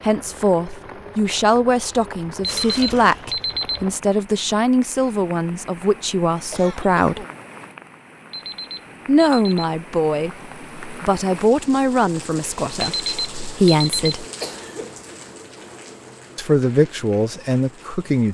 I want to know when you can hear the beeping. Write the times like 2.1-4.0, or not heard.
2.4-3.9, 8.3-9.7, 12.8-14.2.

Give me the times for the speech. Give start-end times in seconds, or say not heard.
0.0-7.2, 9.1-14.2, 16.4-18.2.